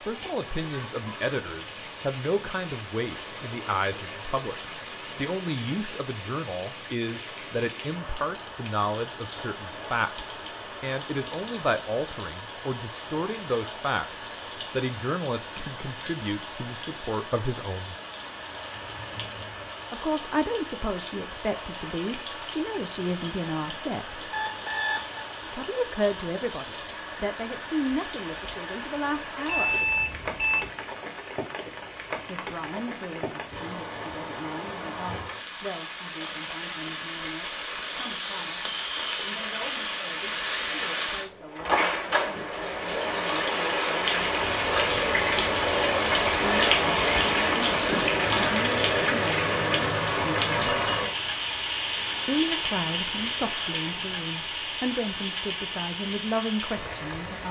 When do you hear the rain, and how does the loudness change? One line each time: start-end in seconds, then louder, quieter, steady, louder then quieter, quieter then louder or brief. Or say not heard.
0.0-57.4 louder.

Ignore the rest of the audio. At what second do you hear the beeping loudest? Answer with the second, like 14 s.
30 s.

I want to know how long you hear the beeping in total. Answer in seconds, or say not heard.
2 s.